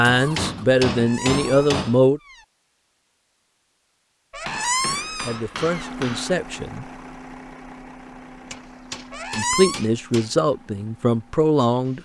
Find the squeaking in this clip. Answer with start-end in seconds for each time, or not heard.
0.8-2.5, 4.3-5.9, 9.1-9.8.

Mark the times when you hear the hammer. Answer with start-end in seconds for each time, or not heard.
0.1-2.0, 4.5-6.3, 8.5-10.3.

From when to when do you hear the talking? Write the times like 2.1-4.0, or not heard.
0.0-2.2, 5.2-6.8, 9.3-12.0.